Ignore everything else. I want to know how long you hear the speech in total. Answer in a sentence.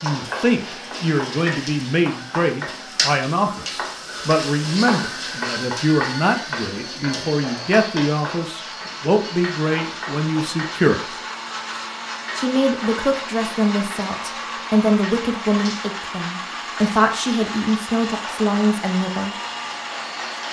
You can hear the speech for 18 seconds altogether.